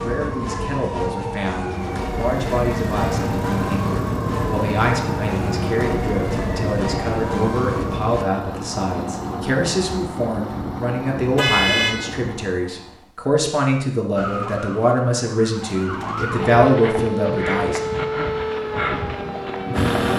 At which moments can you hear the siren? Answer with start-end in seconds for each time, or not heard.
0.0-8.2, 14.2-20.1.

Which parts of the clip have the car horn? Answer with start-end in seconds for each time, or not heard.
11.3-11.9.